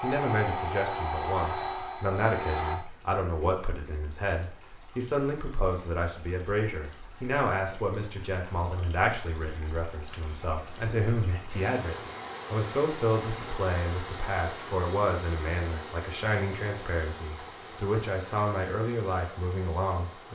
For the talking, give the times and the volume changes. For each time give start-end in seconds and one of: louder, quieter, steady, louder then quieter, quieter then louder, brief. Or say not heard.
0.0-20.3 steady.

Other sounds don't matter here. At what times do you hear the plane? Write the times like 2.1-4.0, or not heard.
0.0-2.8.